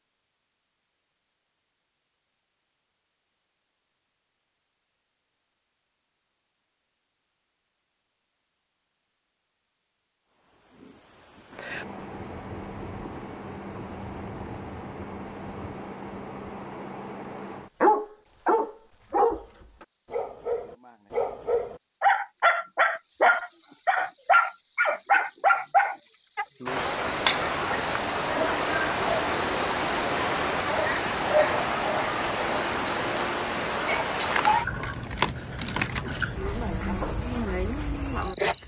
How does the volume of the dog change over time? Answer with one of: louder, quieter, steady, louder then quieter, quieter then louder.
quieter then louder.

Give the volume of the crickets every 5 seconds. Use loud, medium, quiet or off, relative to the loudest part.
off, off, quiet, quiet, medium, loud, loud, loud.